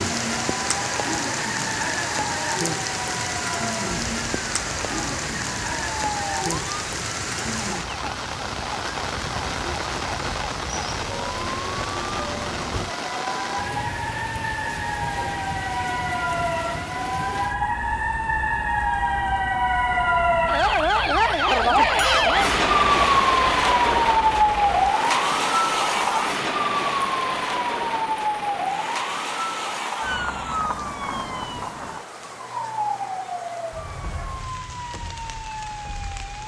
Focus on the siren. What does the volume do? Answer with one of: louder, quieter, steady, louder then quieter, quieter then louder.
louder then quieter.